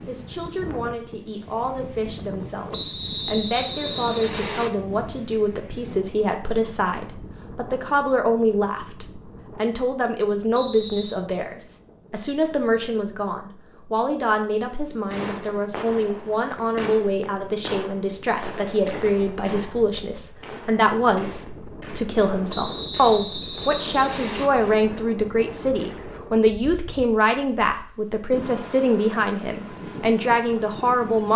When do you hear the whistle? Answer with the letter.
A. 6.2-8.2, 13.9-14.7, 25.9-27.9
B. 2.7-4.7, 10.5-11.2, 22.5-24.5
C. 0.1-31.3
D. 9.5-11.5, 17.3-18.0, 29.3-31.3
B.